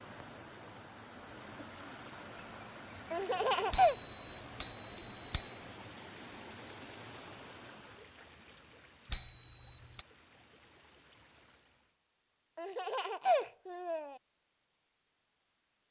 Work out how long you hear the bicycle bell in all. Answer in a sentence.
You can hear the bicycle bell for 3 seconds altogether.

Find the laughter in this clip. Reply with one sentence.
The laughter can be heard from 3.1 to 4.0 s and from 12.6 to 14.2 s.